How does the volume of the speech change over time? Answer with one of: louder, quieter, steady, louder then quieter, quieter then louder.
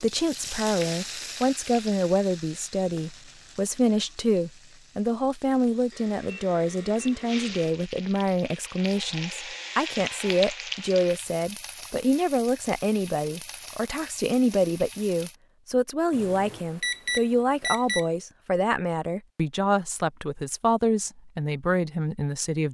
steady.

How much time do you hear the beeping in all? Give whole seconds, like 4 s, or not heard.
4 s.